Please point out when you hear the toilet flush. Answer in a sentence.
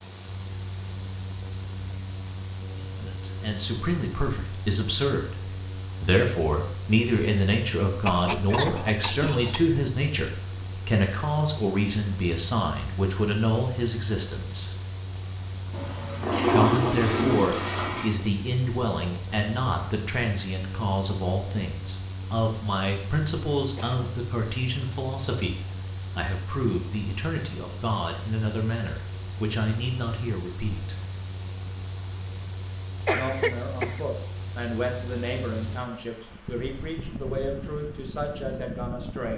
You can hear the toilet flush from 15.7 to 18.1 s.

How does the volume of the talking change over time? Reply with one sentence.
The volume of the talking goes down.